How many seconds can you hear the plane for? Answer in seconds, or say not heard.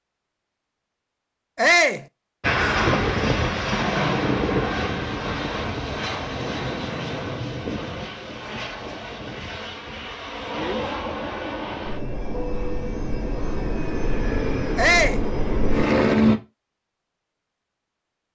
14 s.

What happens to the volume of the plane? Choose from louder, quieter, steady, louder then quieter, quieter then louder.
quieter then louder.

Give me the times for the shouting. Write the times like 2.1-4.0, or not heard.
1.6-2.0, 14.8-15.2.